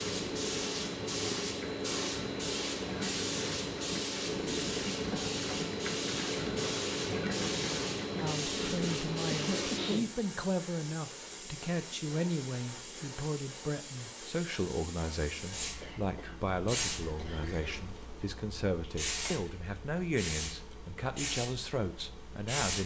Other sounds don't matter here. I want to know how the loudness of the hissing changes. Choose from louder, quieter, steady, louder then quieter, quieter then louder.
quieter.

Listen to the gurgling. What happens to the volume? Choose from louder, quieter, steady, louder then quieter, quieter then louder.
louder.